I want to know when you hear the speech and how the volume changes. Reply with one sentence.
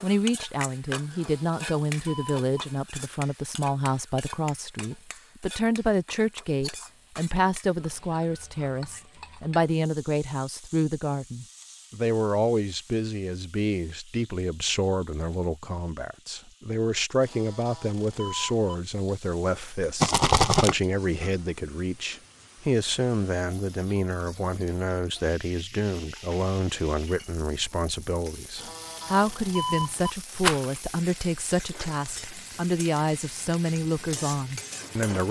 You can hear the speech from 0.0 to 35.2 s, at a steady volume.